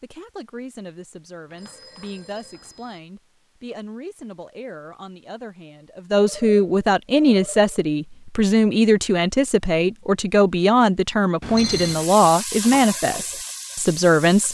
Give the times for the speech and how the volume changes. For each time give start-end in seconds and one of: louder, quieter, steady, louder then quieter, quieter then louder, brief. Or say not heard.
0.0-14.5 louder.